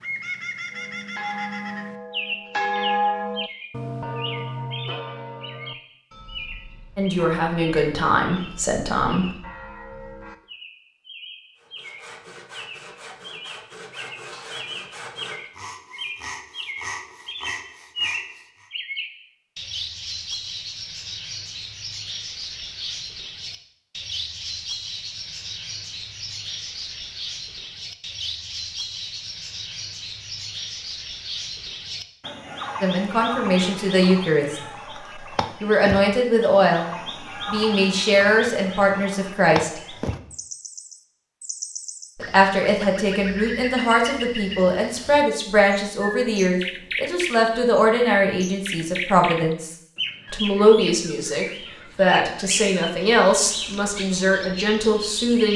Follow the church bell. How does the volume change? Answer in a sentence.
The loudness of the church bell goes down.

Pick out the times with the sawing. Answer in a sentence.
The sawing can be heard from 11.6 to 18.7 s.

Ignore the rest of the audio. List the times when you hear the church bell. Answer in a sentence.
You can hear the church bell from 0.7 to 10.4 s.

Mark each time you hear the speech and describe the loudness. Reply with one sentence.
The speech can be heard briefly from 7.0 to 9.2 s; from 32.8 to 39.9 s, getting quieter then louder; and from 42.1 to 55.5 s, at a steady volume.